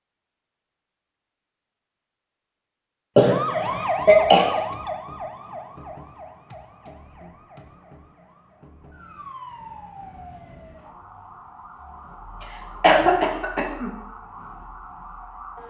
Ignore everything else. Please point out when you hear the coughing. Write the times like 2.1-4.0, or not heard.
3.1-4.5, 12.8-13.9.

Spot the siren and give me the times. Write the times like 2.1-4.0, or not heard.
3.2-15.6.